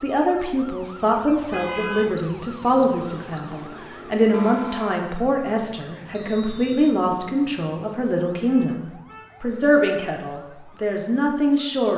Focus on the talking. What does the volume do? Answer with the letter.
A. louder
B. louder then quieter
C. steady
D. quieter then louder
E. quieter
C.